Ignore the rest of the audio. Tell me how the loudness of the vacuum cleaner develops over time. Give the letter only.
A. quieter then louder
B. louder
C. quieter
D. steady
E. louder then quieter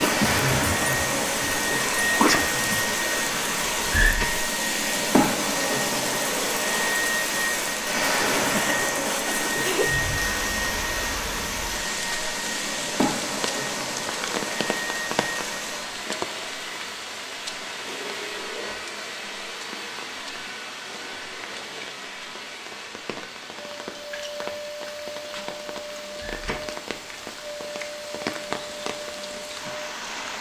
C.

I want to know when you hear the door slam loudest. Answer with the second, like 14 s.
4 s.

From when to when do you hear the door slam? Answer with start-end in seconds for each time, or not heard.
3.6-4.2, 26.2-26.6.